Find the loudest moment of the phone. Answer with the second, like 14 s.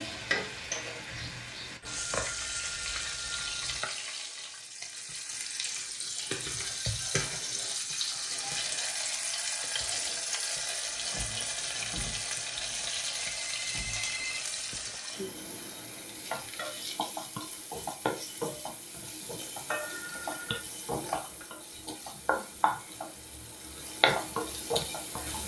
14 s.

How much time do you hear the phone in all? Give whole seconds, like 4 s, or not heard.
5 s.